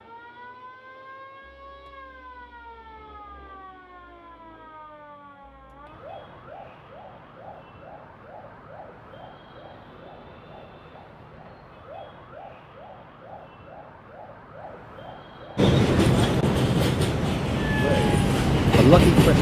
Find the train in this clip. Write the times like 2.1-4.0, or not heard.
15.6-19.3.